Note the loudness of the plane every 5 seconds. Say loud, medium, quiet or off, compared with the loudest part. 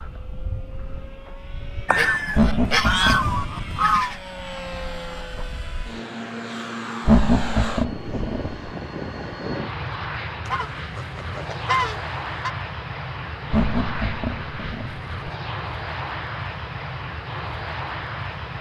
medium, loud, loud, loud.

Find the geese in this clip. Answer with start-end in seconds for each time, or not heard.
1.9-4.2, 10.4-12.6.